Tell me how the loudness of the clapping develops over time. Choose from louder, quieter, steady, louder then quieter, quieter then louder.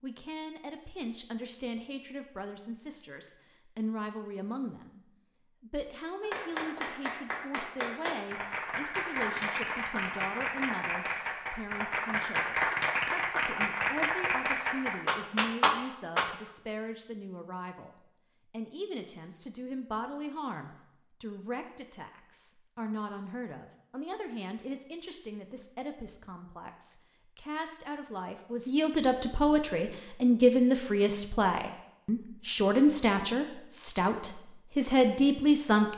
louder.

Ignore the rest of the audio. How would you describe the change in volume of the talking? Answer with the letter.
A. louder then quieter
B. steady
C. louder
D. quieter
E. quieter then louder
C.